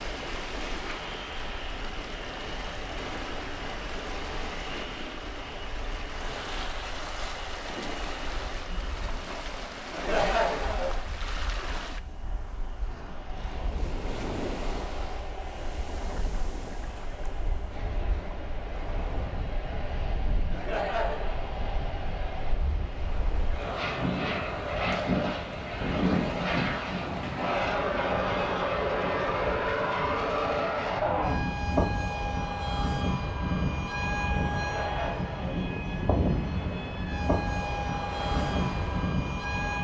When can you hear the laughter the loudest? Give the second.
10 s.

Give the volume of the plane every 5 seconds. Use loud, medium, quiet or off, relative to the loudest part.
quiet, quiet, quiet, quiet, medium, loud, loud, loud.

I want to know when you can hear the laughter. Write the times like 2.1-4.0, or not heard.
9.9-11.1, 20.5-21.5, 34.6-35.6.